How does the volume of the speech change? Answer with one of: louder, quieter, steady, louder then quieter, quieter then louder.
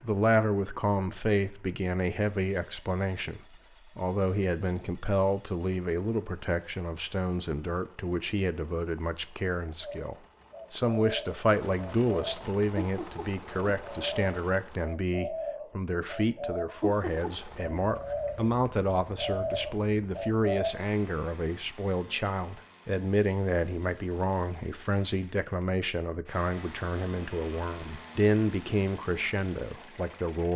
steady.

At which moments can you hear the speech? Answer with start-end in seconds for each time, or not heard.
0.0-30.5.